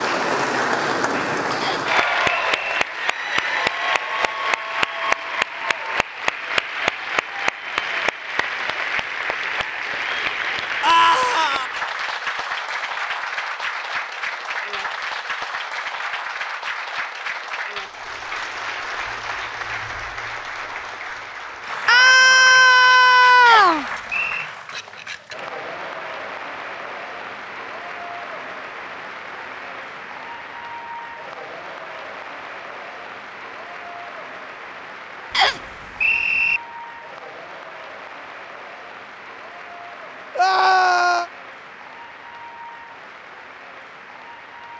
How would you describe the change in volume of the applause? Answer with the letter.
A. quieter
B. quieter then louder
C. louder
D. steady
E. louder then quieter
A.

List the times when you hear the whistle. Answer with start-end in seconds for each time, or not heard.
1.6-2.8, 23.4-24.4, 35.3-36.6.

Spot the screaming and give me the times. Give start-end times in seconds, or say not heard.
10.8-11.7, 21.9-23.9, 40.4-41.2.